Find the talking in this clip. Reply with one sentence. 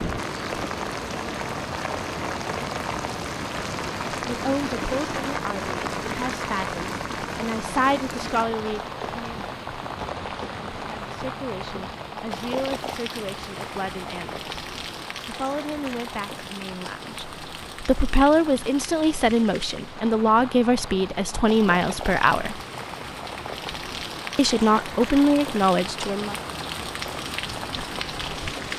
You can hear the talking from 4.2 to 9.4 s, from 10.8 to 14.5 s, from 15.2 to 22.6 s and from 24.4 to 26.4 s.